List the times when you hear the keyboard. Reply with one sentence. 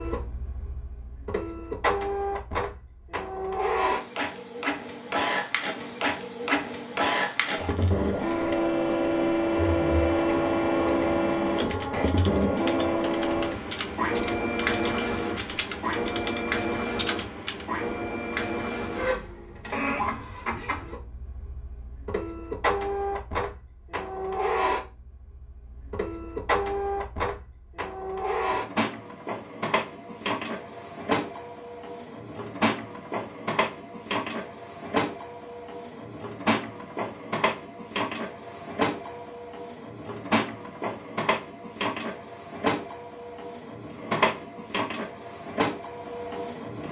The keyboard can be heard from 11.4 to 17.6 s.